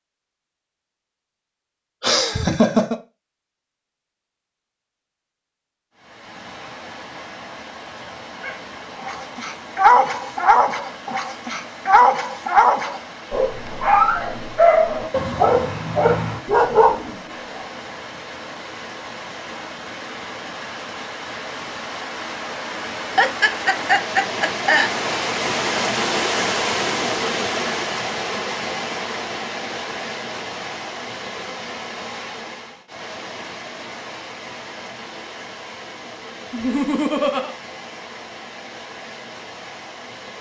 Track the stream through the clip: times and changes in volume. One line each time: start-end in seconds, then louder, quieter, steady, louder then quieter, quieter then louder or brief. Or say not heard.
6.0-40.3 louder then quieter.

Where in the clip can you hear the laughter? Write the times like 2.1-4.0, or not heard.
2.0-3.0, 23.1-24.9, 36.5-37.5.